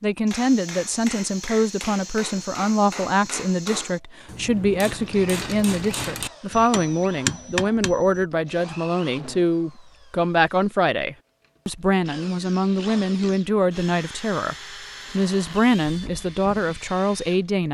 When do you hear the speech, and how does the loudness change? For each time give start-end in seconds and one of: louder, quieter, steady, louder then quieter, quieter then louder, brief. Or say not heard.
0.0-17.6 steady.